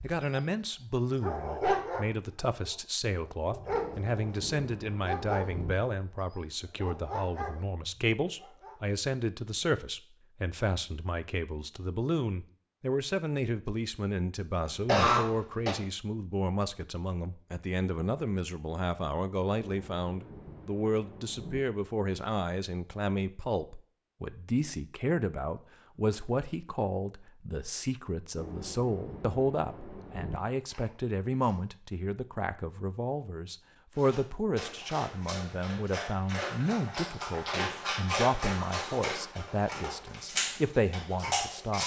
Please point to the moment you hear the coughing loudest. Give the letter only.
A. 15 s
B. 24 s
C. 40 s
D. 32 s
A.